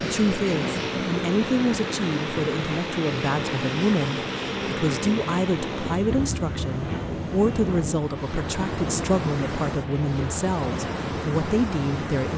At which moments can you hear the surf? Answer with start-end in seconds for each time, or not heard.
0.0-12.3.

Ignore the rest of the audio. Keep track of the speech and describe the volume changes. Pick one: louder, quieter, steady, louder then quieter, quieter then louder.
steady.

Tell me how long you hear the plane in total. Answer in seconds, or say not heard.
12 s.